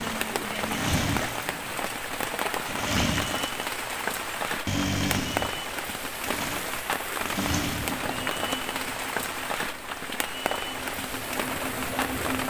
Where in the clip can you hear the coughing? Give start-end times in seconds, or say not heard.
not heard.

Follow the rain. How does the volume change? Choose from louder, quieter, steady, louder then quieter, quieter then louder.
steady.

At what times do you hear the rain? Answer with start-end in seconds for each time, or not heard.
0.0-12.4.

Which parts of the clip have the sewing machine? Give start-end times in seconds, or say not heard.
0.0-12.4.